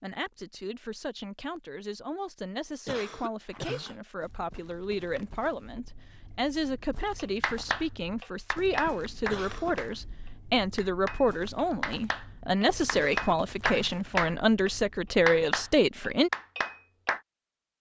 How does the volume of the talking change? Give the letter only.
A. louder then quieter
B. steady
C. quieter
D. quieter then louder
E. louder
E.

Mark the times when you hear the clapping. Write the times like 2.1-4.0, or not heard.
7.2-17.2.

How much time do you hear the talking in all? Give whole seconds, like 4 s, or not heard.
16 s.